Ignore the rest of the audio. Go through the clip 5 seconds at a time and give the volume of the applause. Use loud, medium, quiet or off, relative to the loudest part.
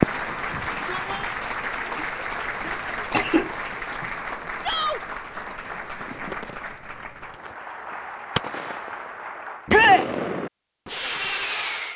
loud, medium, off.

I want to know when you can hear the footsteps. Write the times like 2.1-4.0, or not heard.
not heard.